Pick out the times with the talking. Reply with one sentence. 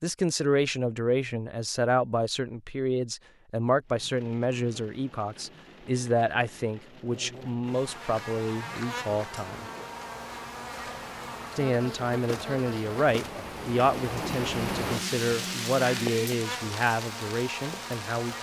The talking can be heard from 0.0 to 9.7 s and from 11.6 to 18.3 s.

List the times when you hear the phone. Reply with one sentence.
The phone can't be heard in this clip.